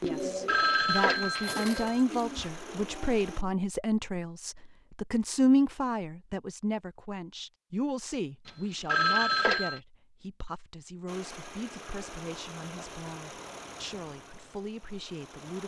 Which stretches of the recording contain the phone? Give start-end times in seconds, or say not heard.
0.1-2.0, 8.4-9.8.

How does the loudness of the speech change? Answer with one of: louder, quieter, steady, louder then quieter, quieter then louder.
quieter.